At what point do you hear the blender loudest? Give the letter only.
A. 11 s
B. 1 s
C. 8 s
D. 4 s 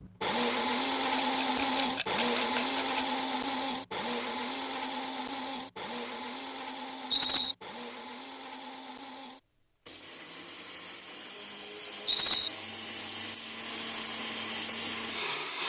B.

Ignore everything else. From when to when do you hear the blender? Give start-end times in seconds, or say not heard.
0.0-15.6.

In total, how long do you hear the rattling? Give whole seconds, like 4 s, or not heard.
3 s.